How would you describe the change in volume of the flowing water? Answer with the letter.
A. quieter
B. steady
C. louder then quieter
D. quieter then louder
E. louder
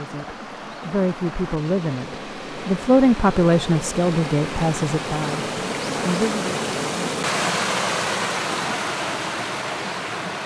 E.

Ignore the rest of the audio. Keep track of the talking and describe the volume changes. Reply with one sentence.
The volume of the talking goes up, then down.